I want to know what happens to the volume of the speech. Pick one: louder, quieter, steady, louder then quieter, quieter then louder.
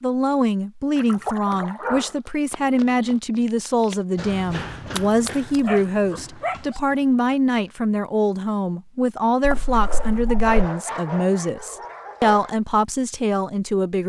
steady.